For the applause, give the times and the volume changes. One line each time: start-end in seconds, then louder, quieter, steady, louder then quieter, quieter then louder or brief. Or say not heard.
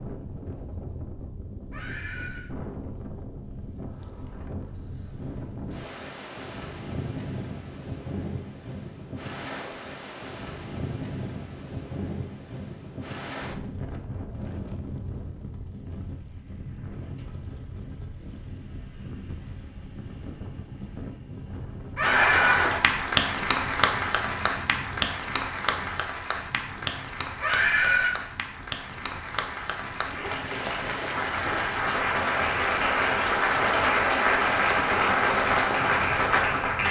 22.0-36.8 quieter then louder.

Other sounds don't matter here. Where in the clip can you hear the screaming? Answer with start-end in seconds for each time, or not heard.
1.7-2.5, 21.9-22.7, 27.4-28.1.